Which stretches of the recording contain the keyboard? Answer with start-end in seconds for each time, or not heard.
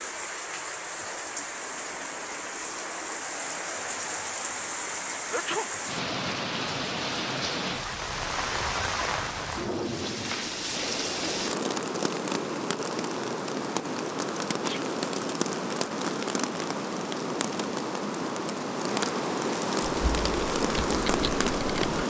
19.9-22.0.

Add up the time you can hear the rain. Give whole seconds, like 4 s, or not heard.
22 s.